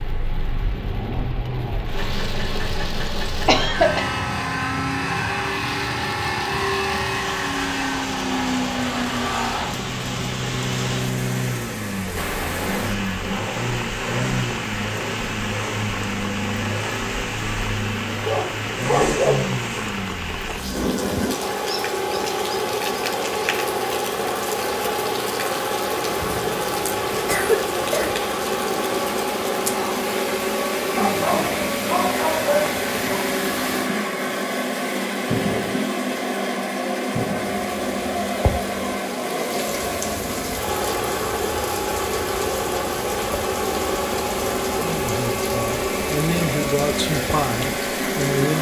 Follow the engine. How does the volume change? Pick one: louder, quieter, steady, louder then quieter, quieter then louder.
steady.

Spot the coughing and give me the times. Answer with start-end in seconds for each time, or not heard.
3.5-4.0, 26.1-28.1.